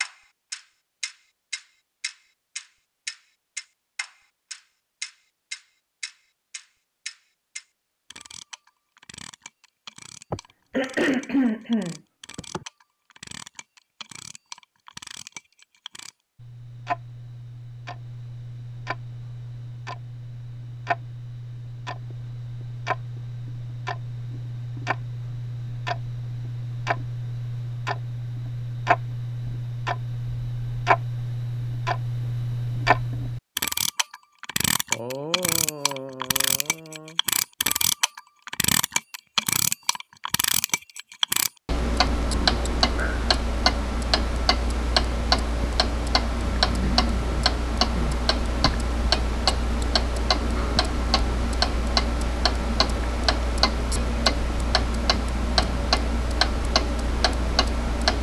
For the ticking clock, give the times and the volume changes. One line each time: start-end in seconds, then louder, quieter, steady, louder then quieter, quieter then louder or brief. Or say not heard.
0.0-58.1 louder.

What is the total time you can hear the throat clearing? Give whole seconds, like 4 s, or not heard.
6 s.